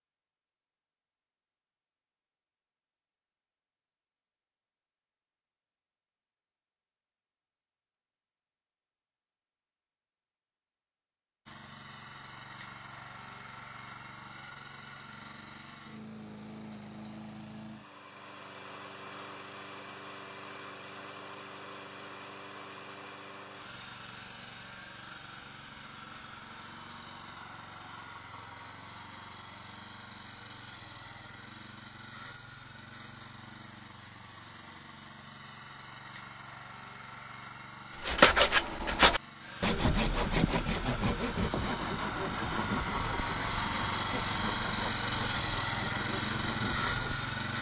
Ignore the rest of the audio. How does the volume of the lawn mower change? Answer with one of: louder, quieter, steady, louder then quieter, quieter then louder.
louder.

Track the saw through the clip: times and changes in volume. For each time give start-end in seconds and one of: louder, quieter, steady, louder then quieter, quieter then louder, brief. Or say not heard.
38.0-47.4 quieter.